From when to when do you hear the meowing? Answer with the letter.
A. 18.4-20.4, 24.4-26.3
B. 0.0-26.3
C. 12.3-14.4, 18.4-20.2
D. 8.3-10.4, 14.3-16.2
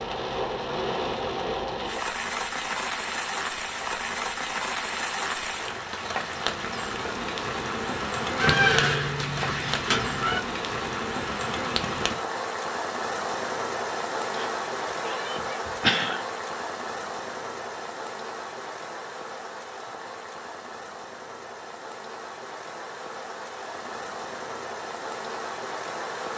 D.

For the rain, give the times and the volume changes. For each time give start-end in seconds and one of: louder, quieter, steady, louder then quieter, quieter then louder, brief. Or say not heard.
0.0-26.3 quieter.